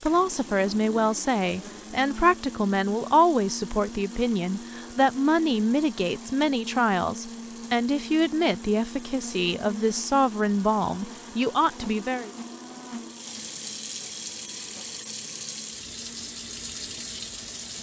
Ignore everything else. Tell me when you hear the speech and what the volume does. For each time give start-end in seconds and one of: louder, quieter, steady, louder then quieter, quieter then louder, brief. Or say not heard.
0.0-12.3 steady.